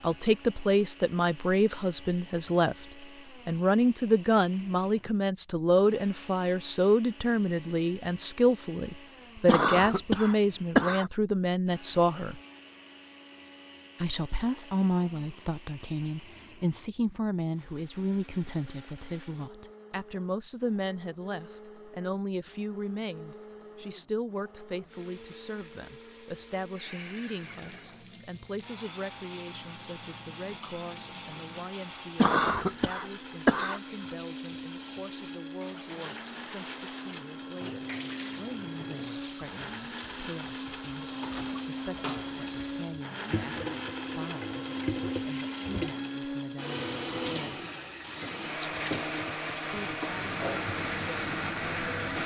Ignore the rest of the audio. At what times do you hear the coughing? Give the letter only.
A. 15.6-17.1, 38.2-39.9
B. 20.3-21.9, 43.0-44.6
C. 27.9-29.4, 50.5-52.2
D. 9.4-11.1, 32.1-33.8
D.